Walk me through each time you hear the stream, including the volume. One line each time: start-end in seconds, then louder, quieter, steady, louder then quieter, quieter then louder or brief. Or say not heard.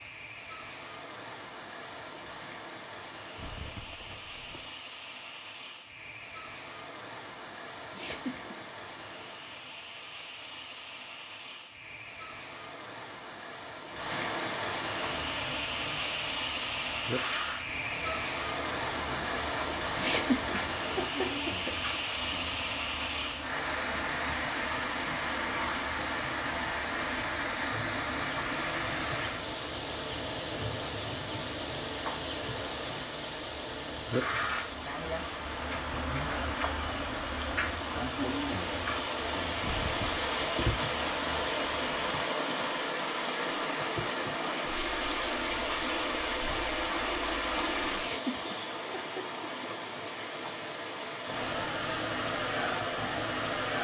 0.0-53.7 louder.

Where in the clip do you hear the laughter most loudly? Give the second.
20 s.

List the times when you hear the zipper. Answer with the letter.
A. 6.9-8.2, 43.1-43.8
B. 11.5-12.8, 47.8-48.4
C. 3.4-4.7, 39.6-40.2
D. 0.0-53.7
C.